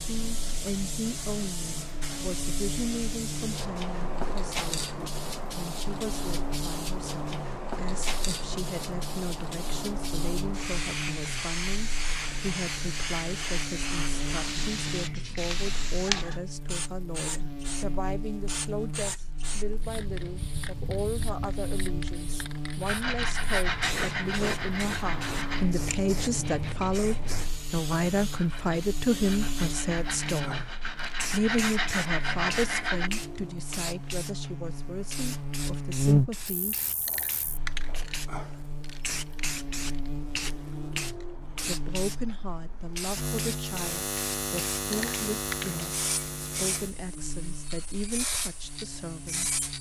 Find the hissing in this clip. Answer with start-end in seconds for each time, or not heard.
0.0-49.7.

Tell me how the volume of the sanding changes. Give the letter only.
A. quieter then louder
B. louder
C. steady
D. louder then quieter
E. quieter
A.